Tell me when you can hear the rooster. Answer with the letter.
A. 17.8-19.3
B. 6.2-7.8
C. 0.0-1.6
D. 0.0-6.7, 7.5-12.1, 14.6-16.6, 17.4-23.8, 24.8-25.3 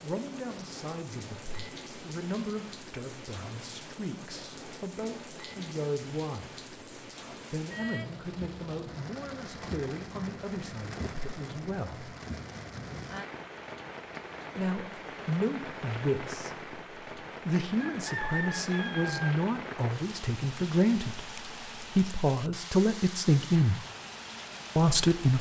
A.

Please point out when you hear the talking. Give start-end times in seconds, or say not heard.
0.0-6.7, 7.5-12.1, 14.6-16.6, 17.4-23.8, 24.8-25.3.